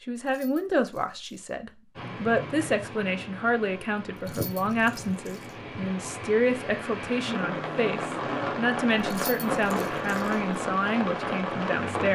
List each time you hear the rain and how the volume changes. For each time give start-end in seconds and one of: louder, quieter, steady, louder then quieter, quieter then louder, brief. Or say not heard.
1.9-12.1 louder.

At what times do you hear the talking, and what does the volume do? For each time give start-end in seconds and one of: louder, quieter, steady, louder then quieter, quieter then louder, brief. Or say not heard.
0.0-12.1 steady.